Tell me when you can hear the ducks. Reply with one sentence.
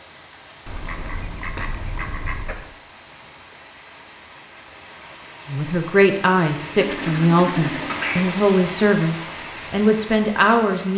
The ducks can be heard from 0.7 to 2.7 s and from 6.8 to 8.2 s.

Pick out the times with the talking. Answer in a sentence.
The talking can be heard from 5.5 to 10.9 s.